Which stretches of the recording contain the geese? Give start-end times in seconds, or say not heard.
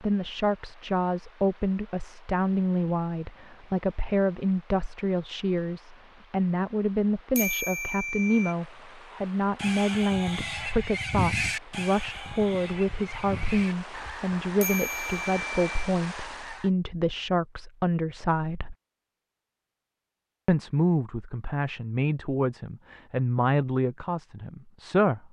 9.6-16.7.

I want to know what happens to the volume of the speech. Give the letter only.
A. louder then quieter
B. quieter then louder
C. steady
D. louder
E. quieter
C.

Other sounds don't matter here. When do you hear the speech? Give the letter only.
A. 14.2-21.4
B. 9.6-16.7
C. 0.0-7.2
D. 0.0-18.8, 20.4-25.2
D.